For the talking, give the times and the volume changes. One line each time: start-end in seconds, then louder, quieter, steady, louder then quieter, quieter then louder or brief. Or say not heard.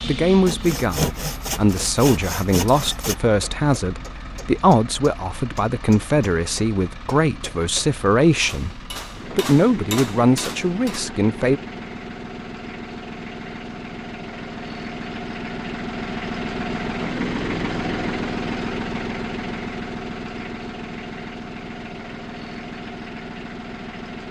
0.1-11.6 steady.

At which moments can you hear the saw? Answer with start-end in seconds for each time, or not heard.
0.5-3.1.